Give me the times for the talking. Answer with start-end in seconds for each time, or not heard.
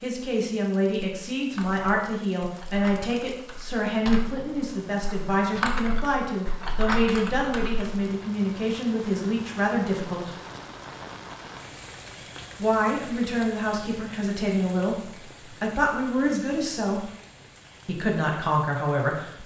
0.0-10.3, 12.6-17.1, 17.9-19.4.